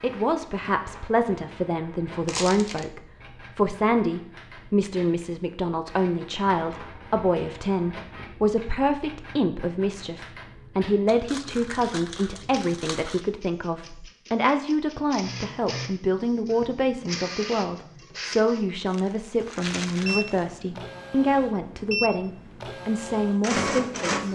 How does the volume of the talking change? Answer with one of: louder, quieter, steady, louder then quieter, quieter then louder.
steady.